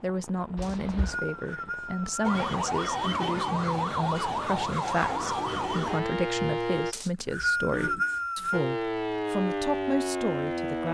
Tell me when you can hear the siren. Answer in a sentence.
You can hear the siren from 2.2 to 7.0 s and from 8.5 to 10.8 s.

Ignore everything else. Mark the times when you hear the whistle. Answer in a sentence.
The whistle can be heard from 0.6 to 2.2 s and from 6.9 to 8.6 s.